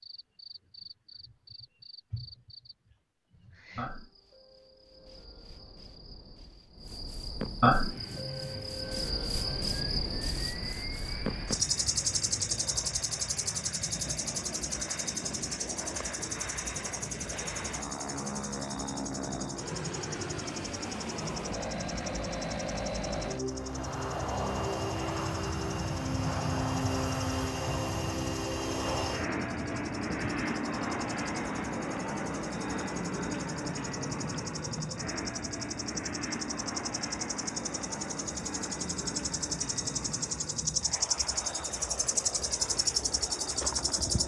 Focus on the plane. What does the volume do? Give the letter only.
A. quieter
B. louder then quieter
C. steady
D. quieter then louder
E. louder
B.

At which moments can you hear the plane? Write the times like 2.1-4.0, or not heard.
7.7-44.2.